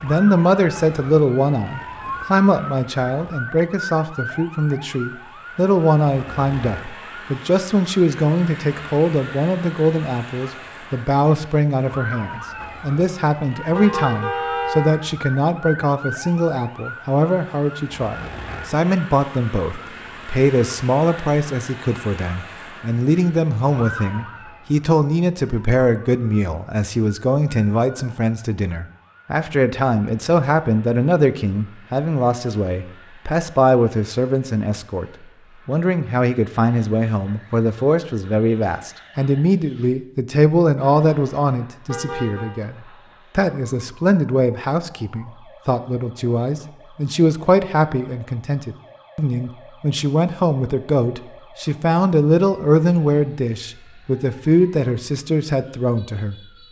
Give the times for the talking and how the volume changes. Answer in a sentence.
You can hear the talking from 0.0 to 56.4 s, at a steady volume.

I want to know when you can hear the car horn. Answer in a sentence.
The car horn can be heard from 13.7 to 14.9 s and from 41.9 to 42.5 s.